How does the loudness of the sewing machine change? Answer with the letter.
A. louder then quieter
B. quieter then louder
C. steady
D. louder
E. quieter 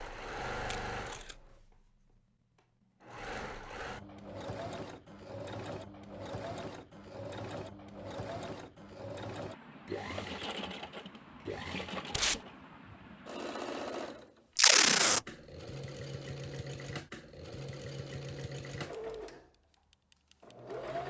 C.